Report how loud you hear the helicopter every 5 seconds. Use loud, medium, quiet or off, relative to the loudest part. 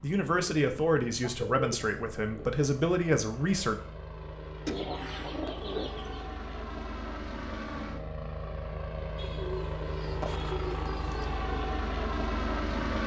quiet, medium, loud.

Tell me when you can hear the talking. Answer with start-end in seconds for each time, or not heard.
0.0-3.8.